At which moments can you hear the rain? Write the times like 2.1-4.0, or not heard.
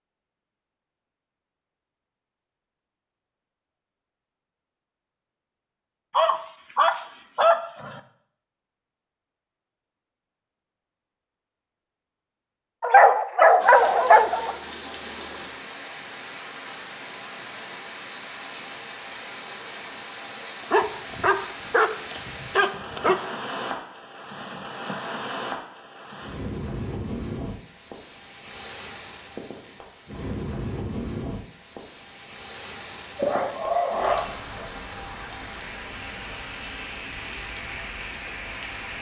13.6-38.9.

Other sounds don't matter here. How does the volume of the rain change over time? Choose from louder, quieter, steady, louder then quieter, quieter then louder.
steady.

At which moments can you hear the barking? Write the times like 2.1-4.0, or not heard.
6.1-8.0, 12.8-14.6, 20.6-23.2, 33.1-34.6.